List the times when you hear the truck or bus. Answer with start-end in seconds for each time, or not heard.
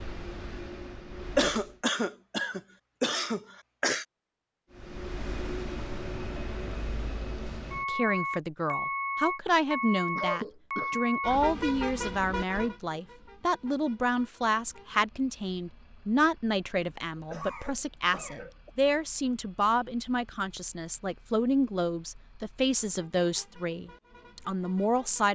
0.0-1.8, 4.7-25.2.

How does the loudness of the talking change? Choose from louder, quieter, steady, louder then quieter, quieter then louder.
steady.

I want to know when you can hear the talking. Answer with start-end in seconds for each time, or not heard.
7.8-25.2.